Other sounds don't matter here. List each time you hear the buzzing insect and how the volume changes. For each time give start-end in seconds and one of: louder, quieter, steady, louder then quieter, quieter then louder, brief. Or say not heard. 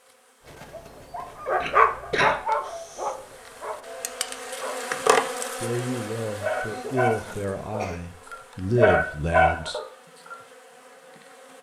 0.0-11.5 louder then quieter.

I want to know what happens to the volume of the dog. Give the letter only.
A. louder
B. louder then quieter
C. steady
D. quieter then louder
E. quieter
D.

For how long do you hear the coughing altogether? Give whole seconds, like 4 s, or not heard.
2 s.